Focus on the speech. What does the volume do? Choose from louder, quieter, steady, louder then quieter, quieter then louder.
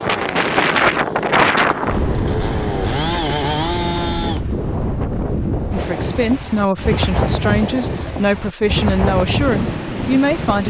steady.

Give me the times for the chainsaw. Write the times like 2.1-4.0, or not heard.
0.0-4.4.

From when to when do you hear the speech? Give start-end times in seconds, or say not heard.
5.7-10.6.